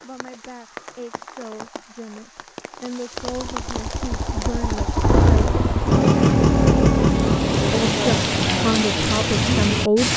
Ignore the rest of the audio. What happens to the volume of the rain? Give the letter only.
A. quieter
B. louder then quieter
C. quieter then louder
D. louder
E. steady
D.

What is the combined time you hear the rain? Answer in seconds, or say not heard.
10 s.